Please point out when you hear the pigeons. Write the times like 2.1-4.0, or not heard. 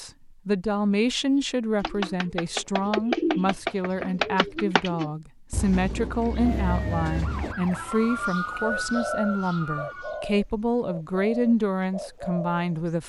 1.8-12.9.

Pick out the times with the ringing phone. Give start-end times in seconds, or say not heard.
not heard.